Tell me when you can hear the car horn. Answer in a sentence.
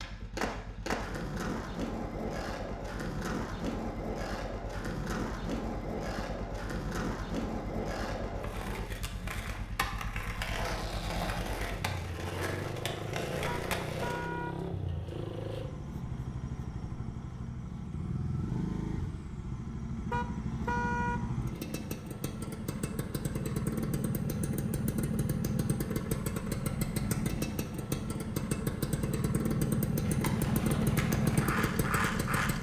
The car horn can be heard from 13.4 to 14.6 s and from 20.1 to 21.2 s.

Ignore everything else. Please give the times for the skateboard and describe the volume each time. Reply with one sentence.
The skateboard can be heard from 0.0 to 14.3 s, at a steady volume; and briefly from 30.0 to 32.5 s.